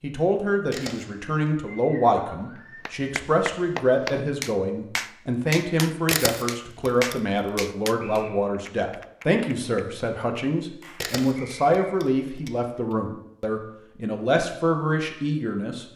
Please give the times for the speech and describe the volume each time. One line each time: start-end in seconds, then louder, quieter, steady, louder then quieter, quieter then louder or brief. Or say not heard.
0.0-15.8 steady.